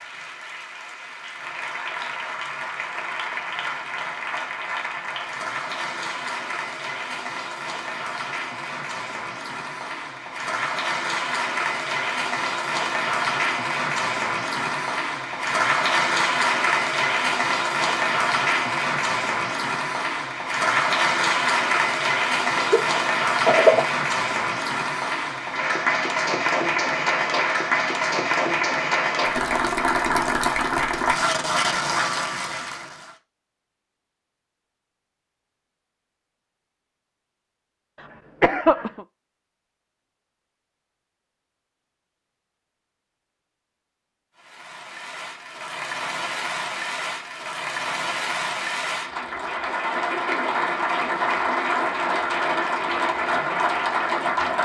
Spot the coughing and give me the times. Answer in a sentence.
You can hear the coughing from 22.6 to 23.9 s and from 38.0 to 39.0 s.